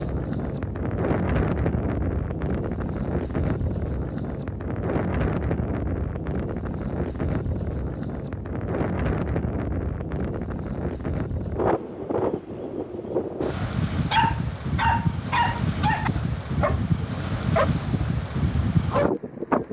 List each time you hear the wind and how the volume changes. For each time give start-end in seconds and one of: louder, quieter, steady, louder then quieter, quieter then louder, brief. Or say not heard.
0.0-19.6 steady.